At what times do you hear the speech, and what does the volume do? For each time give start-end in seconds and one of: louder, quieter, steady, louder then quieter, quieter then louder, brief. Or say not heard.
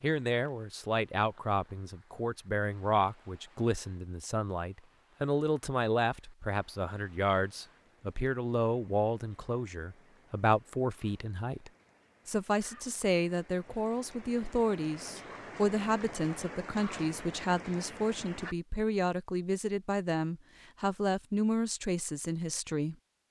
0.0-22.9 steady.